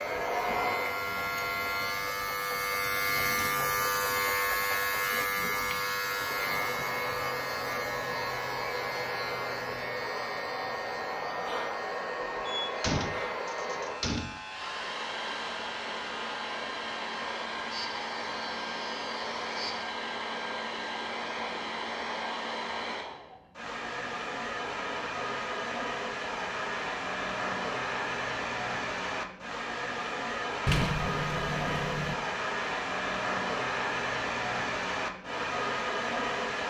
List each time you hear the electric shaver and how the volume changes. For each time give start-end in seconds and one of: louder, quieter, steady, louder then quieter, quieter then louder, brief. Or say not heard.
0.0-19.9 quieter.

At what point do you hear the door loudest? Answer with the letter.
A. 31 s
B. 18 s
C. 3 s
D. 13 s
A.